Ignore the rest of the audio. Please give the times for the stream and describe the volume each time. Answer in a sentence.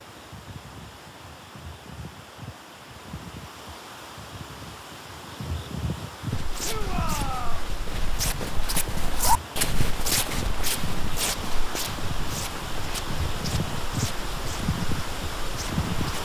The stream can be heard from 0.0 to 16.2 s, getting louder.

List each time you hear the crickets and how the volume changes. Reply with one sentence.
The crickets can be heard from 0.0 to 16.2 s, getting louder.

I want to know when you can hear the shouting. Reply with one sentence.
You can hear the shouting from 6.6 to 7.7 s.